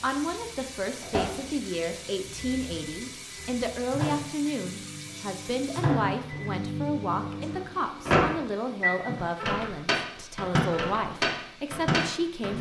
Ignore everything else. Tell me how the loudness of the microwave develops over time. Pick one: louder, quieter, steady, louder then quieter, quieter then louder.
louder.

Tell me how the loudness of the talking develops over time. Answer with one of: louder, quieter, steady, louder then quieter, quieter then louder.
steady.